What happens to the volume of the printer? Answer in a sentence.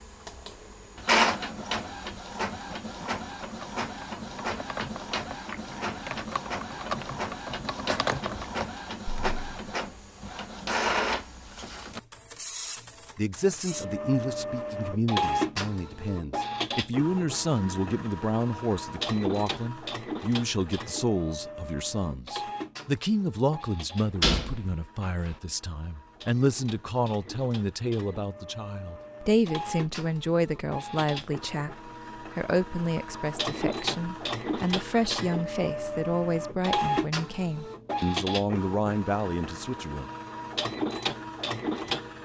The loudness of the printer goes down, then up.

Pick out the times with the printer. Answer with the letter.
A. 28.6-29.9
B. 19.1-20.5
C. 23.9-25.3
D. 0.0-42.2
D.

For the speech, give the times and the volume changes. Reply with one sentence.
The speech can be heard from 13.2 to 40.1 s, at a steady volume.